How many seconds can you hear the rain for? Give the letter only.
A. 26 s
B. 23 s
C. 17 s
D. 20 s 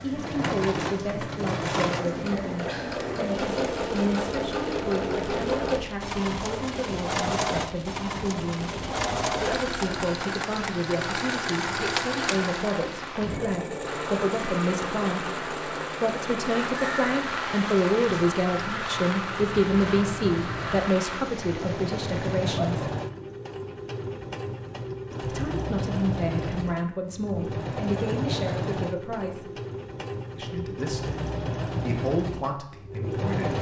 B.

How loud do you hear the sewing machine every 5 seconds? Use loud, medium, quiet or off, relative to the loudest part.
loud, loud, loud, medium, loud, loud, loud.